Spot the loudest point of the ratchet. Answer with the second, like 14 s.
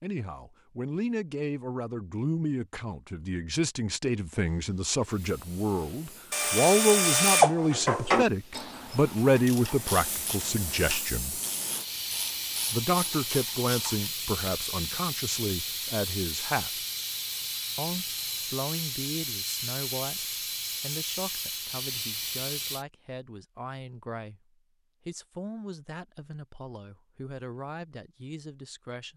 7 s.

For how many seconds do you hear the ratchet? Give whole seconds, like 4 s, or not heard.
8 s.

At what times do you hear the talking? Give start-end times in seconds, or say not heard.
0.0-11.4, 12.7-16.8, 17.8-29.1.